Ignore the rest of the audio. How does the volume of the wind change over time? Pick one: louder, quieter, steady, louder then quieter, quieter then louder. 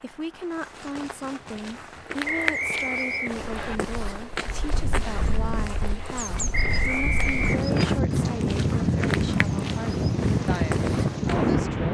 louder.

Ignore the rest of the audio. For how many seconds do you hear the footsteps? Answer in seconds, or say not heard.
11 s.